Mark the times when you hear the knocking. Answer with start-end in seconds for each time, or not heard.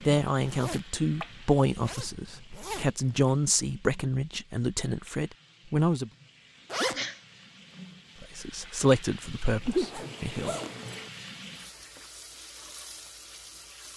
not heard.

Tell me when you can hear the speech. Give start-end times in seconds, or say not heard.
0.1-6.1, 8.2-10.6.